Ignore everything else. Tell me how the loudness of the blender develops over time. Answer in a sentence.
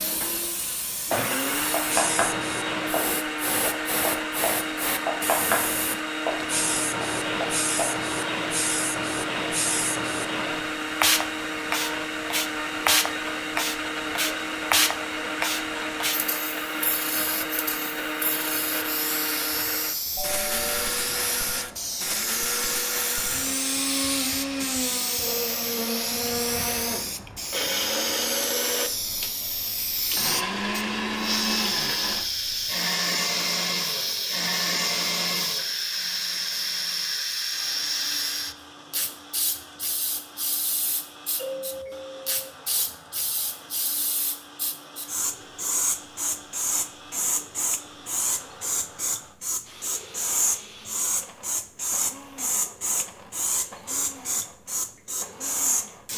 The loudness of the blender goes down.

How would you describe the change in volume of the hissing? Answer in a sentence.
The loudness of the hissing stays about the same.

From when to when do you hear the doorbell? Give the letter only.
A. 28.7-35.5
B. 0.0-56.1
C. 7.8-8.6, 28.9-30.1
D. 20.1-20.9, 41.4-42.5
D.